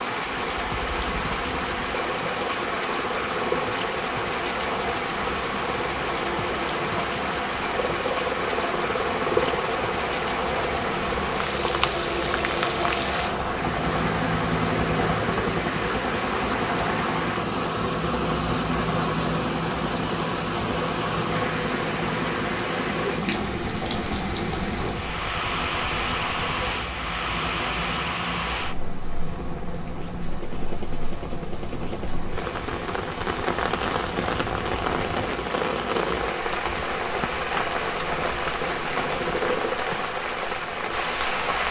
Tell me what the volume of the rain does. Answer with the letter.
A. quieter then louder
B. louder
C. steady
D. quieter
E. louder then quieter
C.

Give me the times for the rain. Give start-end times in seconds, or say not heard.
0.0-41.6.